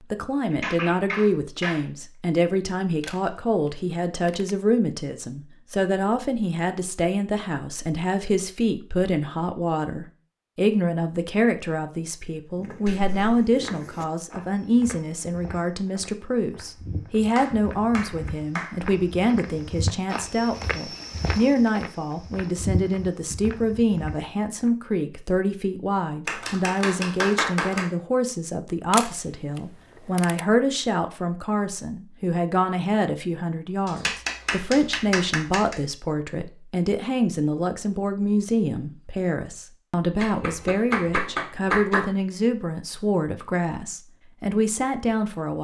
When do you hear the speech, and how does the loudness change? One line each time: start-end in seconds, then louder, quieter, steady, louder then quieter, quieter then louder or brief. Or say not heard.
0.1-45.5 steady.